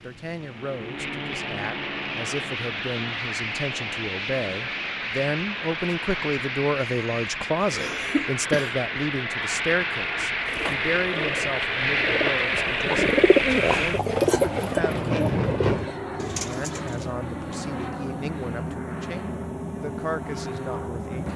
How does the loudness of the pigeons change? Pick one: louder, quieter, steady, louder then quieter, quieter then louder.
louder then quieter.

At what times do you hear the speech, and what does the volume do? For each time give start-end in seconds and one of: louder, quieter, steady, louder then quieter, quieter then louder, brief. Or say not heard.
0.0-21.3 louder then quieter.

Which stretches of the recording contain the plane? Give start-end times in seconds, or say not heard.
0.0-21.3.